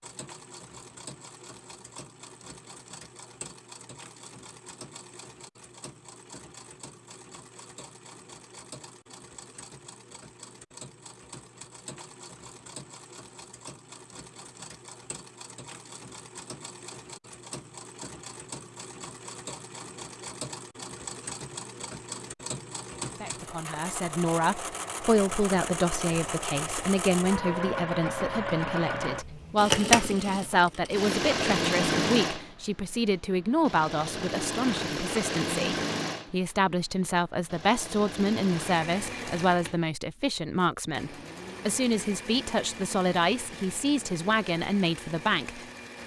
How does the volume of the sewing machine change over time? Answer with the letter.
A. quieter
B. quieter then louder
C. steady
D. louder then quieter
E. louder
D.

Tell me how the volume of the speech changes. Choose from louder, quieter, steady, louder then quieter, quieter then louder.
steady.